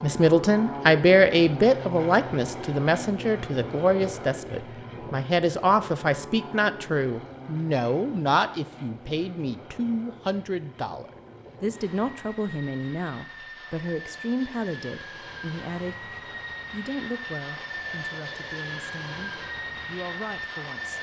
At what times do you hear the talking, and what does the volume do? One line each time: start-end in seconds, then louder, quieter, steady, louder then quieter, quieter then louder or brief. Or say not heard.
0.0-20.9 quieter.